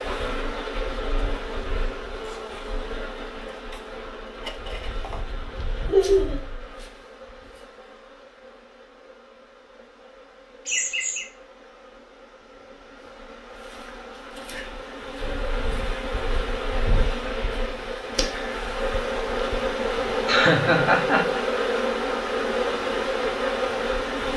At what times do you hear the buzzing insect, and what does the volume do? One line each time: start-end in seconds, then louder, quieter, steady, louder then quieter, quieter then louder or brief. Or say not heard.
0.0-24.3 quieter then louder.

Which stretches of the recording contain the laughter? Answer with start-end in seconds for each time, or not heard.
5.8-6.4, 10.7-11.2, 20.2-21.4.